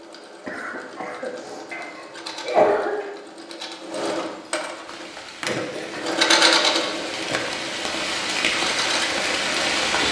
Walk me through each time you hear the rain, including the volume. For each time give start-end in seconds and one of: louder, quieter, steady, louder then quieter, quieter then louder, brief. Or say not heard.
4.8-10.0 louder.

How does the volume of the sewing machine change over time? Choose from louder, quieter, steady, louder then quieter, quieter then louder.
louder then quieter.